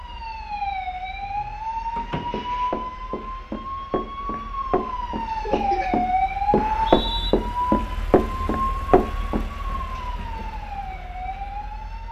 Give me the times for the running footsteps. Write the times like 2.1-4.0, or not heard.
2.3-9.4.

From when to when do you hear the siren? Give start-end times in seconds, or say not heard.
0.0-12.0.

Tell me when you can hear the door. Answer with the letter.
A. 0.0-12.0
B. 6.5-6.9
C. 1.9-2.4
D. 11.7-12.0
C.